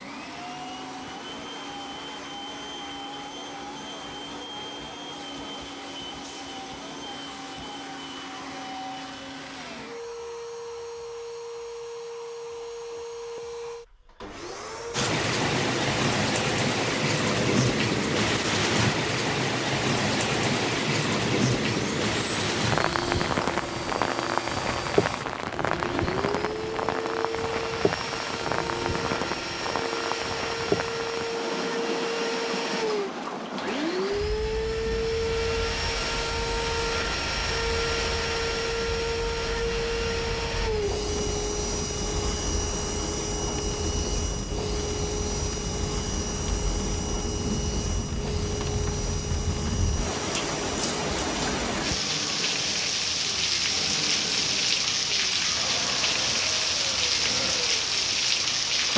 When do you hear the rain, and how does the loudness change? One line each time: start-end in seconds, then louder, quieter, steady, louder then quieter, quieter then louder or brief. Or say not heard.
14.9-58.9 quieter then louder.